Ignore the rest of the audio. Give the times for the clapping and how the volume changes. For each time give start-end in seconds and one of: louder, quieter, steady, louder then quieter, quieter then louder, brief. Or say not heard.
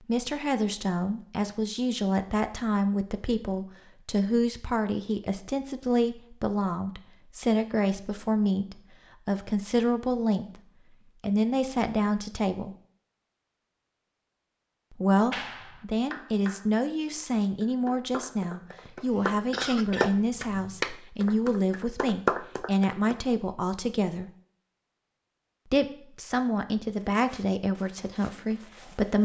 15.3-23.2 louder.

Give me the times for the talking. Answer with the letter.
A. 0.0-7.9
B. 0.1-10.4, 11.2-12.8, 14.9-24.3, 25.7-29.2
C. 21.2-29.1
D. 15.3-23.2
B.